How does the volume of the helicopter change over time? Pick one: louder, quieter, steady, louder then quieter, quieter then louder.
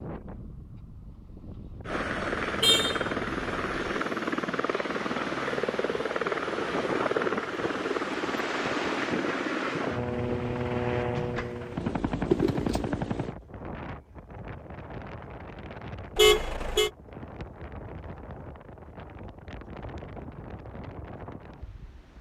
steady.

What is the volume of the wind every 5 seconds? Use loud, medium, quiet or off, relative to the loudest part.
medium, loud, medium, medium, medium.